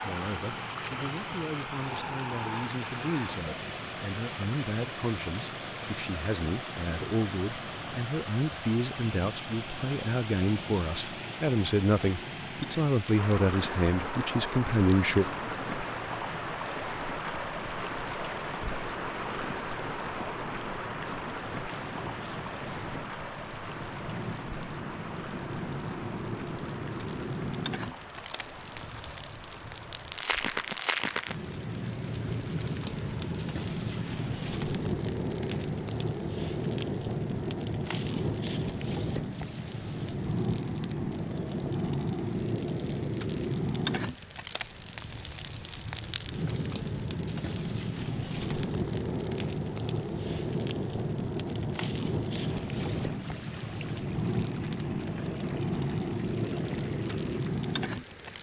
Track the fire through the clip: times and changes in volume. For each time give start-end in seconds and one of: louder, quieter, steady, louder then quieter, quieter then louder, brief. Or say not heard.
0.0-58.3 louder.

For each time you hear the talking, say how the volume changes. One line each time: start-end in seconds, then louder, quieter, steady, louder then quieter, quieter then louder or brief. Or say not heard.
0.0-15.3 louder.